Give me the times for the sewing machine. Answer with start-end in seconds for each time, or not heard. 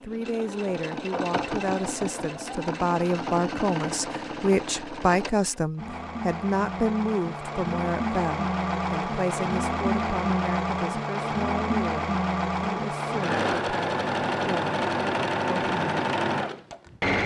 0.0-17.2.